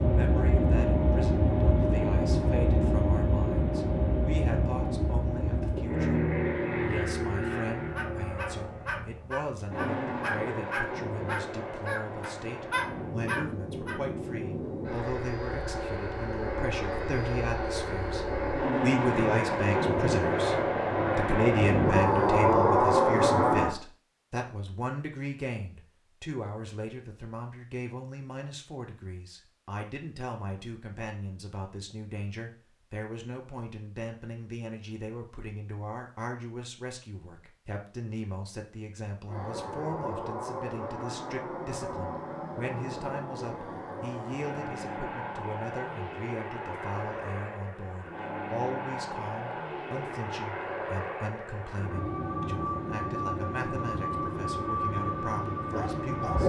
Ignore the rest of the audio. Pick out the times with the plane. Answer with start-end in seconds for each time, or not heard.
0.0-23.8, 39.2-56.4.